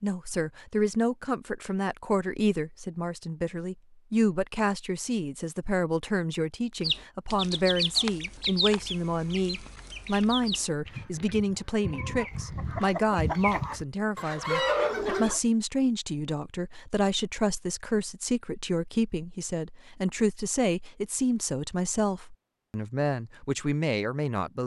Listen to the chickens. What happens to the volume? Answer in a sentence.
The volume of the chickens goes down, then up.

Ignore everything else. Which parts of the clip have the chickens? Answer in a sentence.
You can hear the chickens from 6.8 to 15.4 s.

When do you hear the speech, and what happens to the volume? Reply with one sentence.
The speech can be heard from 0.0 to 24.6 s, at a steady volume.